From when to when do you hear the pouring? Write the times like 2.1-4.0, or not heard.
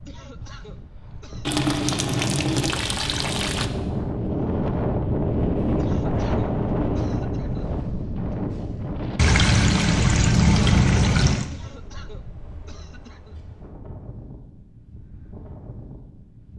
1.4-3.6, 9.2-11.5.